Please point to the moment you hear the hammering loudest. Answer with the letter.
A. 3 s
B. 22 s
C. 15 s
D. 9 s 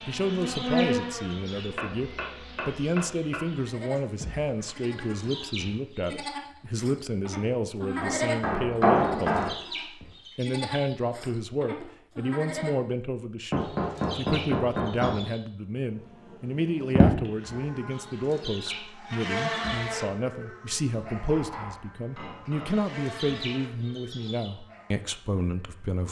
D.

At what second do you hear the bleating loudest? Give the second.
8 s.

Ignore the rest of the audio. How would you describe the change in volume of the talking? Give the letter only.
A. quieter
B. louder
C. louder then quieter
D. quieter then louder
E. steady
E.